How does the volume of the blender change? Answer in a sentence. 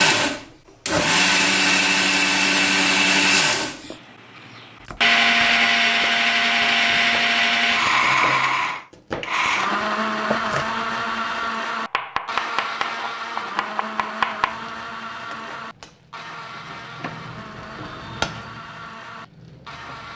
The loudness of the blender goes down.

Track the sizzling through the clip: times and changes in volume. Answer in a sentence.
The sizzling can be heard from 14.4 to 20.1 s, getting louder then quieter.